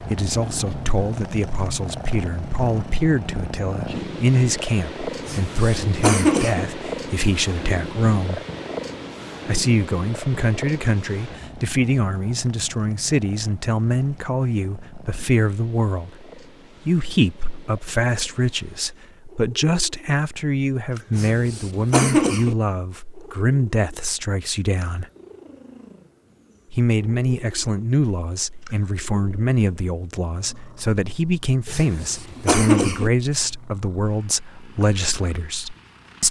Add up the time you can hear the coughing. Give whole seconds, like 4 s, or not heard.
4 s.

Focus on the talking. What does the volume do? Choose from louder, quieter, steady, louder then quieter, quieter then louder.
steady.